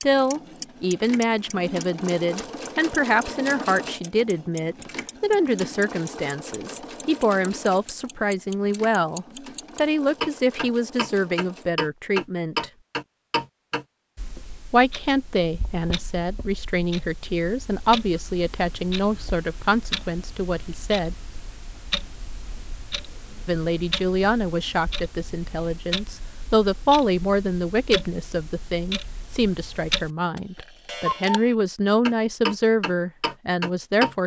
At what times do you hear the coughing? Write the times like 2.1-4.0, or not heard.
not heard.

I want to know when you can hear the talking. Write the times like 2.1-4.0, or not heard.
0.0-12.7, 14.7-21.1, 23.4-34.2.